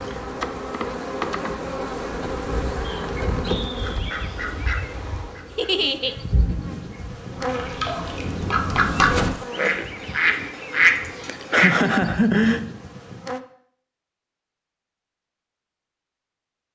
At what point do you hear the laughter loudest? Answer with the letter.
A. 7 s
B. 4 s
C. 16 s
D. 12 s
D.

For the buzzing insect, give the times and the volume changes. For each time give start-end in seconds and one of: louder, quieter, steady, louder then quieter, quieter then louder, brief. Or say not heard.
0.0-13.4 quieter.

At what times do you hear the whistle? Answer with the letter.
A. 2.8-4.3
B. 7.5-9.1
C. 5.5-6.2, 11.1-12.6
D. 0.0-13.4
A.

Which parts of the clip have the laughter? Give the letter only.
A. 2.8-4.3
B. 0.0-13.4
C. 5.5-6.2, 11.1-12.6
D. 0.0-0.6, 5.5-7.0
C.